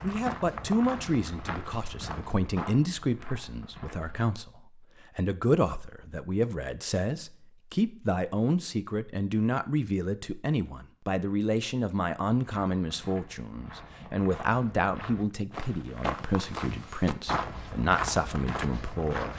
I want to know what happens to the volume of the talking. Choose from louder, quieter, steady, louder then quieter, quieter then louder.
steady.